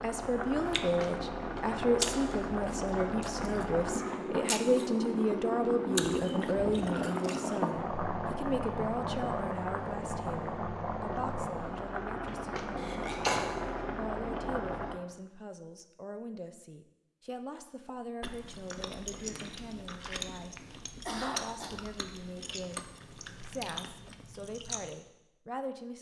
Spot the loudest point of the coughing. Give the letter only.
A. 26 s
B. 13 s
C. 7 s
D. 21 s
B.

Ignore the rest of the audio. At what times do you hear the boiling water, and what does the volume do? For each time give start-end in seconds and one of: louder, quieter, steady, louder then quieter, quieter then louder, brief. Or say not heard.
0.0-15.0 steady.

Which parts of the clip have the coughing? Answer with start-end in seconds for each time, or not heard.
5.8-7.0, 12.8-13.4, 20.4-21.7.